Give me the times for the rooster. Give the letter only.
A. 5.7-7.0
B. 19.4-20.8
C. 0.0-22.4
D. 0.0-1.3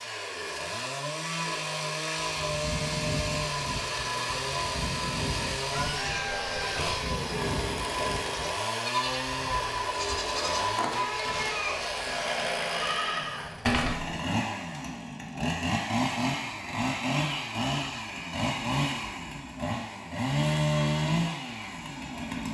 A.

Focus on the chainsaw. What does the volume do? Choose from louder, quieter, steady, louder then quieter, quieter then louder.
steady.